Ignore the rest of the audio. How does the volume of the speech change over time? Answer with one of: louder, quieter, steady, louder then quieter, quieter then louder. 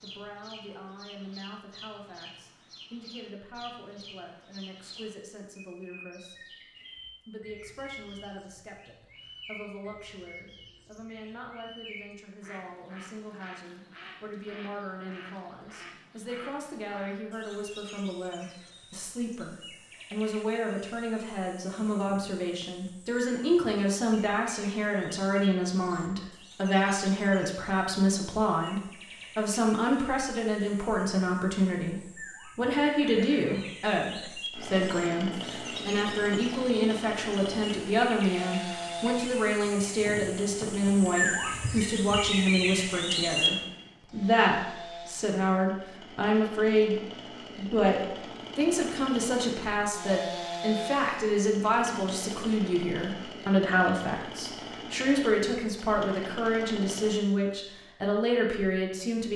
louder.